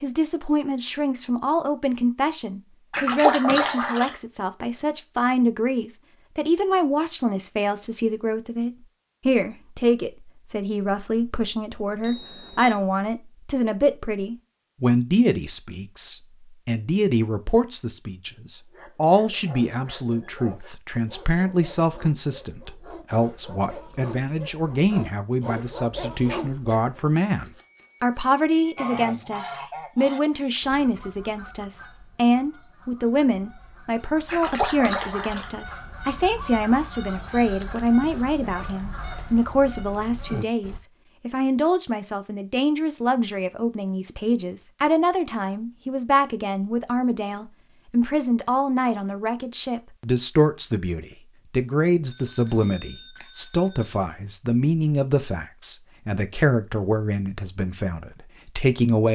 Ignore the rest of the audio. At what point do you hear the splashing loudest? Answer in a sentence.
The volume of the splashing peaks at 3 seconds.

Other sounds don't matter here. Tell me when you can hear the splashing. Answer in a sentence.
The splashing can be heard from 2.9 to 4.2 s and from 34.2 to 35.5 s.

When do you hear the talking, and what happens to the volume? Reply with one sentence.
The talking can be heard from 0.0 to 59.0 s, at a steady volume.